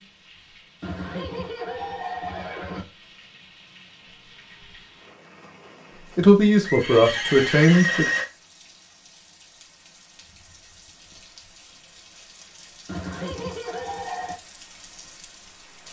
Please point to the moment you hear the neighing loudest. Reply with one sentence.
The volume of the neighing peaks at 8 seconds.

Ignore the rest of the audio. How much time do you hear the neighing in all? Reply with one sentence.
The neighing can be heard for 5 seconds in total.